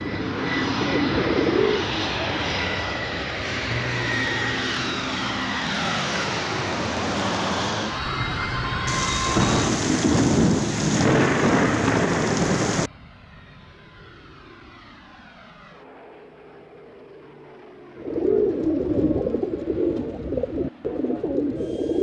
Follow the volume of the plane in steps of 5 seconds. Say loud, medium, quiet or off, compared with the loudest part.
loud, loud, quiet, quiet, quiet.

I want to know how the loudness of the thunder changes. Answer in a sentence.
The loudness of the thunder stays about the same.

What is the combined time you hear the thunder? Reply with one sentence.
You can hear the thunder for 4 seconds altogether.